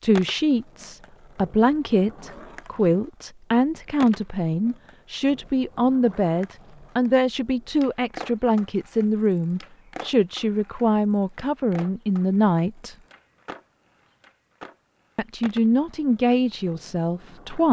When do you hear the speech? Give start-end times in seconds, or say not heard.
0.0-12.9, 15.2-17.6.